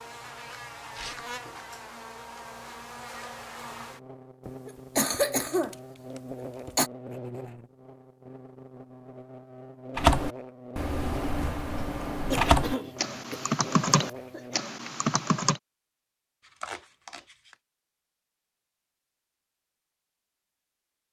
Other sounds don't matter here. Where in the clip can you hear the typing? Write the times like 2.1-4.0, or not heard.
9.9-15.6.